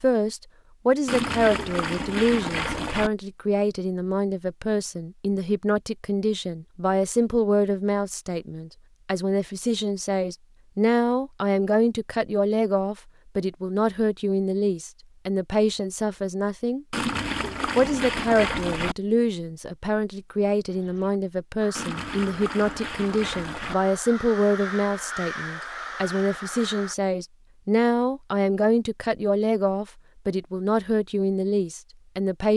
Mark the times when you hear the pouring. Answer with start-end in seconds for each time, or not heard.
1.1-3.1, 16.9-18.9, 21.8-23.8.